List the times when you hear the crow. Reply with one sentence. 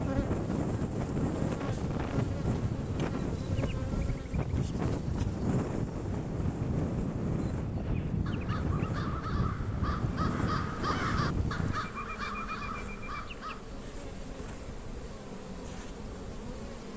You can hear the crow from 7.8 to 13.7 s.